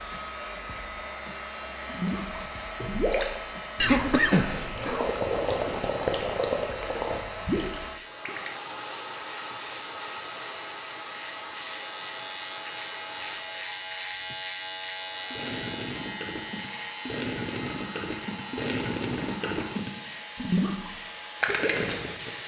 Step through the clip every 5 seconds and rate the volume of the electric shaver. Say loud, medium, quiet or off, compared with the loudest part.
medium, medium, loud, loud, medium.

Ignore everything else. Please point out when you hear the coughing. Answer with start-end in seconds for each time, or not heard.
3.8-5.2.